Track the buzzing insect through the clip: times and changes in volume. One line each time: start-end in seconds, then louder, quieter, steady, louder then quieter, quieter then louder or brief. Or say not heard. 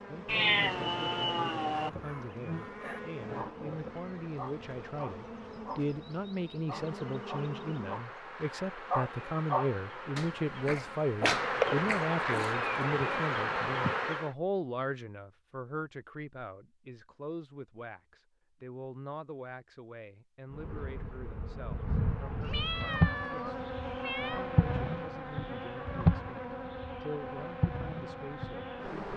0.0-14.3 louder
20.5-29.1 louder then quieter.